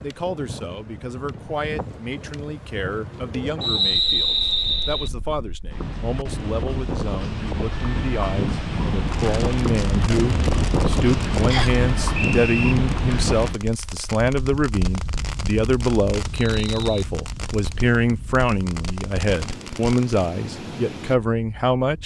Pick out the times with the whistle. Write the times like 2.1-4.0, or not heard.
3.6-5.1, 11.5-12.8, 16.3-17.1.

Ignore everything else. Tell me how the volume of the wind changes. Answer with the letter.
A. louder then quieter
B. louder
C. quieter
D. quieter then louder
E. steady
A.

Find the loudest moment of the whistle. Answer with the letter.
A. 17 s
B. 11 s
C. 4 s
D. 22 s
C.